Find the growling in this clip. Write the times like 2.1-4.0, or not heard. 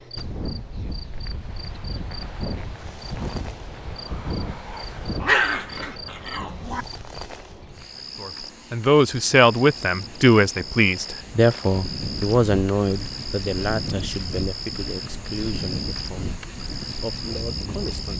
5.2-6.8.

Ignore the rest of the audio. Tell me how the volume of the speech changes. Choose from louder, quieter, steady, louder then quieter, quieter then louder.
quieter.